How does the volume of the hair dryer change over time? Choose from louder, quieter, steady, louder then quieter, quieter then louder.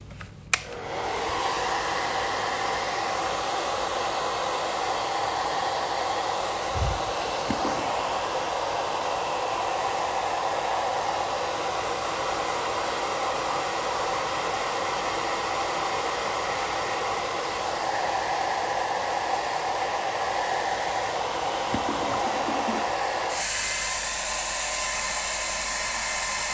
steady.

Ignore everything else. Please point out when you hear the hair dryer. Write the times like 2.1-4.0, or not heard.
0.0-26.4.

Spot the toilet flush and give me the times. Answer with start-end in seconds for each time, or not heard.
7.3-8.0, 21.4-22.9.